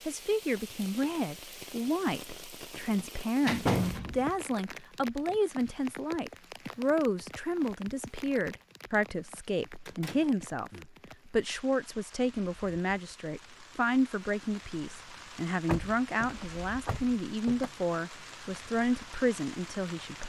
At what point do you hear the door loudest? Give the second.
4 s.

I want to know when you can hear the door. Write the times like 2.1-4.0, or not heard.
3.0-4.3, 9.8-10.9, 15.7-17.7.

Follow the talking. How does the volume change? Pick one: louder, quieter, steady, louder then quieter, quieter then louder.
steady.